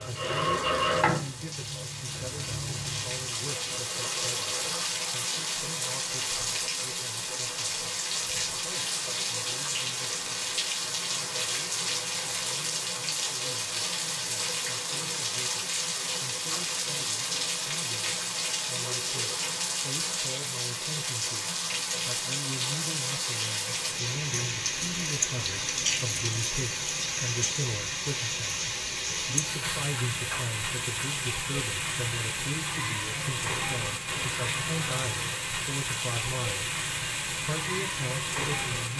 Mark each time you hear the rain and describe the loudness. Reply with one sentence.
You can hear the rain from 0.0 to 38.9 s, at a steady volume.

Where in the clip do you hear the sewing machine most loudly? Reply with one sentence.
The volume of the sewing machine peaks at 1 second.